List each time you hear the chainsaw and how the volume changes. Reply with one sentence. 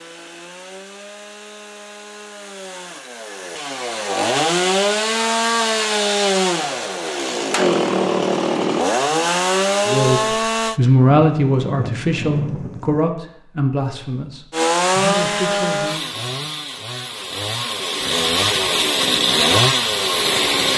You can hear the chainsaw from 0.0 to 10.8 s, getting louder; and from 14.5 to 20.7 s, getting quieter then louder.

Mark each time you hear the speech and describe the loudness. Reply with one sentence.
You can hear the speech from 9.8 to 16.1 s, getting quieter.